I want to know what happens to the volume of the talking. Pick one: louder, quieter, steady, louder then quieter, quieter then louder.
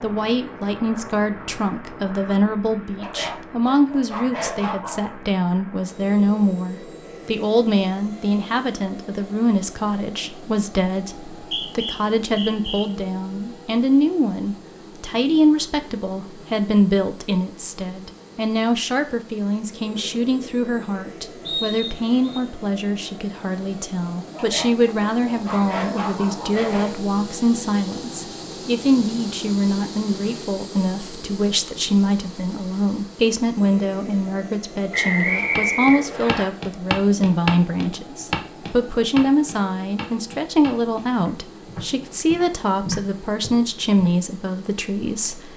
steady.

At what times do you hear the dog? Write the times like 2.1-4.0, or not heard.
3.0-5.2, 24.3-26.9.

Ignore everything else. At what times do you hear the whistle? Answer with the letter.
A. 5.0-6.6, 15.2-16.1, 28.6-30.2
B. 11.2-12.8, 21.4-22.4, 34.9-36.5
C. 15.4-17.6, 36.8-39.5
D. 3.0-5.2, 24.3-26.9
B.